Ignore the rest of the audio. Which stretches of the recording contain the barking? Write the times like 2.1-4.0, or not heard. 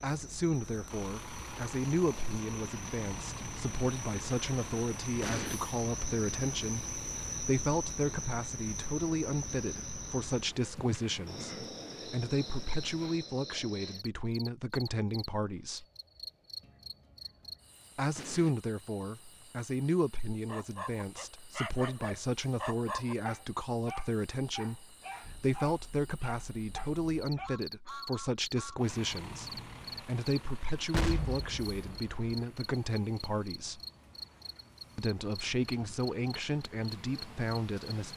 20.4-27.5.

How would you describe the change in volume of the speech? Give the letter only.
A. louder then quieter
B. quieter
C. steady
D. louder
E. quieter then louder
C.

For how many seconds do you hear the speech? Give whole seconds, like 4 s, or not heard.
35 s.